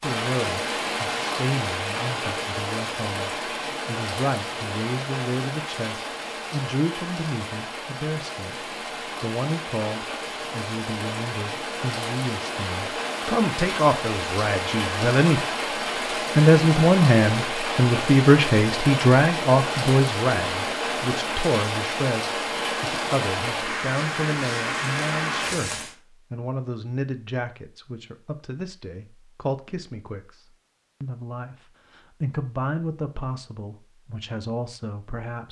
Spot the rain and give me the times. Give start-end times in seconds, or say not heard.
0.0-25.9.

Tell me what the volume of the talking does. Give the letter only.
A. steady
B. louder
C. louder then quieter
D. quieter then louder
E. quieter
C.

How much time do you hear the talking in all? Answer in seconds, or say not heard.
34 s.